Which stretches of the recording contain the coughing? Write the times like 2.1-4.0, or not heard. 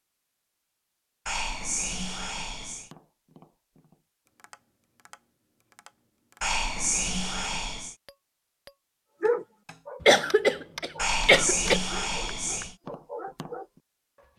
10.1-11.8.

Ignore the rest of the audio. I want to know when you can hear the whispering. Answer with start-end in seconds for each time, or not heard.
1.2-2.9, 6.4-8.0, 10.9-12.8.